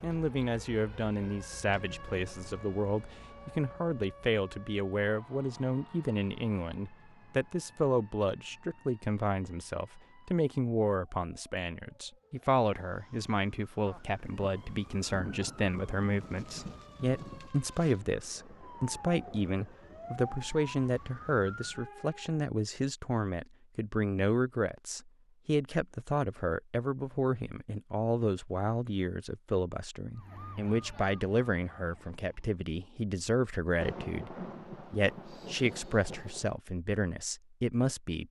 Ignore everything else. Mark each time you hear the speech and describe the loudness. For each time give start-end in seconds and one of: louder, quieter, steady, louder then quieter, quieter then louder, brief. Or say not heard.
0.0-38.2 steady.